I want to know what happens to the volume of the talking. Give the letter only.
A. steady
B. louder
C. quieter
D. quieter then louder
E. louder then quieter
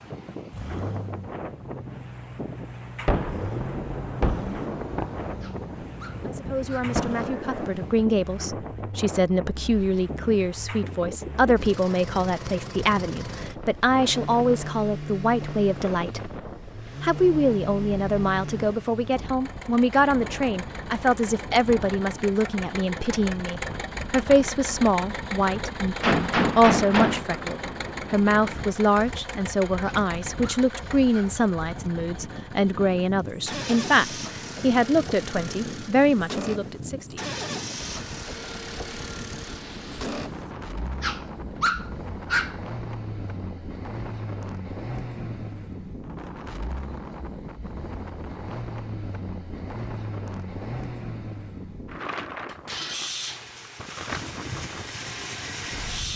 A.